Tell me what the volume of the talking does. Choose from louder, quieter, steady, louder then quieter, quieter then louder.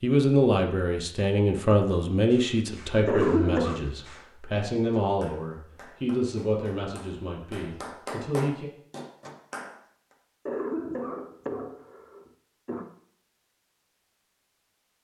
quieter.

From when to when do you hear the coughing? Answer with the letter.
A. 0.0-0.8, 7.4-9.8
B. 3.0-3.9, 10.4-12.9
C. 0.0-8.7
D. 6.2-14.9
B.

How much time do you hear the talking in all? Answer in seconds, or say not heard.
9 s.